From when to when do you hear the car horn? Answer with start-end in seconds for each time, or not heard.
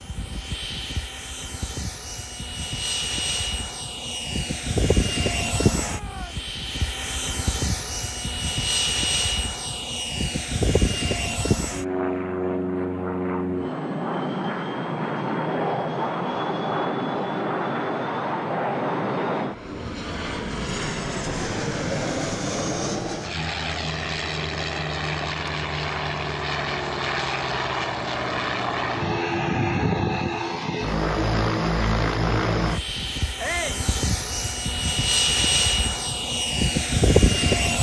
not heard.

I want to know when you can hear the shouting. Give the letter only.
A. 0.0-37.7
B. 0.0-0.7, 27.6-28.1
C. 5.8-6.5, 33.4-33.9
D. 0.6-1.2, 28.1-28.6
C.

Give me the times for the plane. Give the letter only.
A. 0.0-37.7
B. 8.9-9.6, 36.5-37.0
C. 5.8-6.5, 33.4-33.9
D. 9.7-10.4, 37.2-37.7
A.